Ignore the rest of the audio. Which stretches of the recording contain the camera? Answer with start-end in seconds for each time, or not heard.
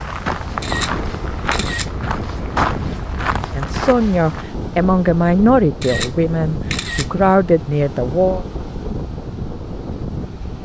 0.6-1.9, 5.8-7.1.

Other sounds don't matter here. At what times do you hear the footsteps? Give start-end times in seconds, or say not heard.
0.0-4.5.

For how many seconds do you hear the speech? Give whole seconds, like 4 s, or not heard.
5 s.